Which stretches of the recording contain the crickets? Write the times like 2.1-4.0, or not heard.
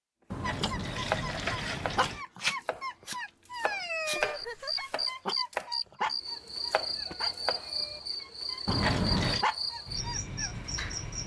4.3-11.2.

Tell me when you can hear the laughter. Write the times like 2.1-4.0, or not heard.
4.2-5.0.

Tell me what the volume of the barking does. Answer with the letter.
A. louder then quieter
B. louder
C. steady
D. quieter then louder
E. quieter
D.